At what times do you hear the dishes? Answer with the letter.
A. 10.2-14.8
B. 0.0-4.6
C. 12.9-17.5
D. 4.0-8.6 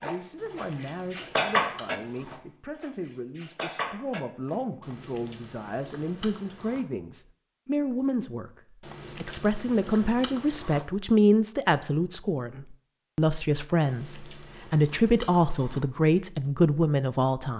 B.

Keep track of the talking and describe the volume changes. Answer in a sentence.
The loudness of the talking goes up.